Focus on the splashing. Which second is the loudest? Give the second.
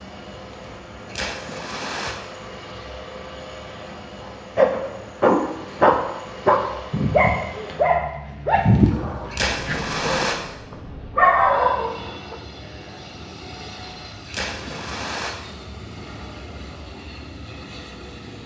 10 s.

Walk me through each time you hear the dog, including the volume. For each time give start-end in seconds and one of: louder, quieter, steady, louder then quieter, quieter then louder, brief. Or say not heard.
4.5-12.3 quieter then louder.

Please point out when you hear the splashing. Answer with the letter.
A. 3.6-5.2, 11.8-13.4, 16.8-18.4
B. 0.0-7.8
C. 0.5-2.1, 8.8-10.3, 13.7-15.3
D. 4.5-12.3
C.